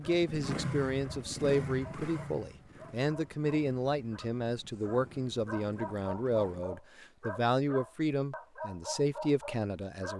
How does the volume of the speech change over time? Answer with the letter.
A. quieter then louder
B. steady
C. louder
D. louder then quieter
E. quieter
B.